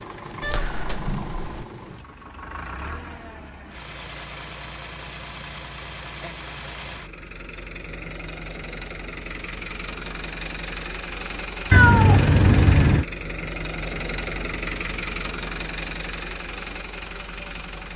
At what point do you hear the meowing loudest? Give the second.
12 s.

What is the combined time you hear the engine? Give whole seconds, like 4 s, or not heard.
18 s.